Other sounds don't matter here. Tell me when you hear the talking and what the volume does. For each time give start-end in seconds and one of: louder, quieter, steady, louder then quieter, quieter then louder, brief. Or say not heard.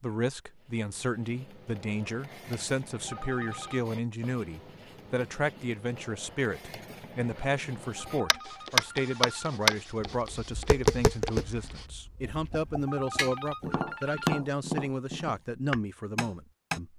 0.0-16.9 steady.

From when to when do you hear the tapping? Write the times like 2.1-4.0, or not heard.
8.3-16.8.